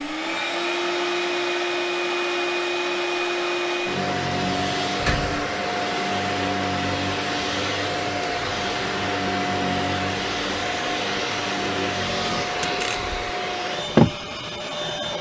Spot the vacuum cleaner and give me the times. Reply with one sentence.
The vacuum cleaner can be heard from 0.0 to 15.1 s.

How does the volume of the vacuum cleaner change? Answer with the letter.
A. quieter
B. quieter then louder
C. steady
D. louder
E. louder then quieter
C.